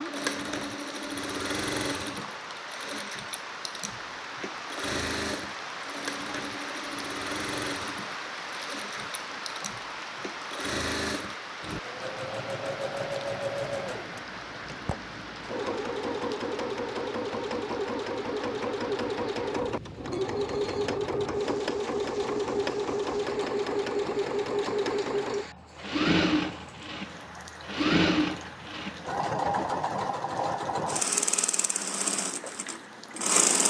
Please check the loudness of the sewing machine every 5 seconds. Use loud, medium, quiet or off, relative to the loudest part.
medium, medium, medium, loud, loud, loud, loud.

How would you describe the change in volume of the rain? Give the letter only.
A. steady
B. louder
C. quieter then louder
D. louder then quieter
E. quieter
E.